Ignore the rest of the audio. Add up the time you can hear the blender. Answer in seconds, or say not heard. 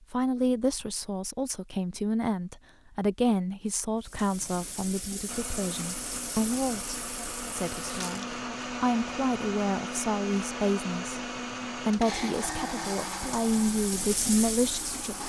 10 s.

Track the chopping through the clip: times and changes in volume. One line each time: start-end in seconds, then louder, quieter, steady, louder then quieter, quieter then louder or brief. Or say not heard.
not heard.